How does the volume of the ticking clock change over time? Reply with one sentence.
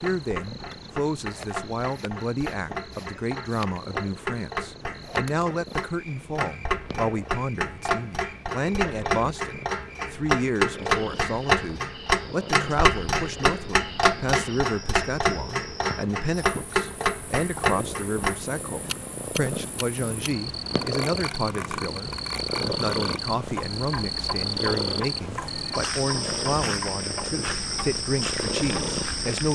The volume of the ticking clock goes up, then down.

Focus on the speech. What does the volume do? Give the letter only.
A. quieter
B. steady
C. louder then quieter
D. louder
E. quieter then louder
B.